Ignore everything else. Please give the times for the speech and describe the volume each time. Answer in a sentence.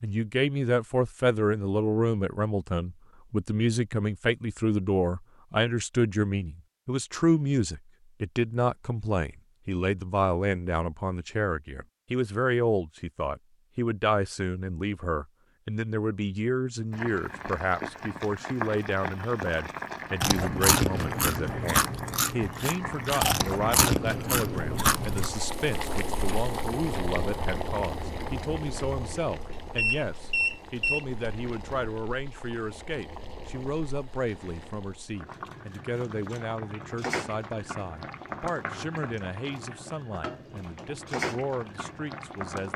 You can hear the speech from 0.0 to 42.7 s, getting quieter.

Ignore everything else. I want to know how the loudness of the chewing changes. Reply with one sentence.
The loudness of the chewing goes down, then up.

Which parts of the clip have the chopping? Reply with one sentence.
The chopping can't be heard in this clip.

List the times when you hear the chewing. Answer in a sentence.
The chewing can be heard from 20.2 to 25.3 s.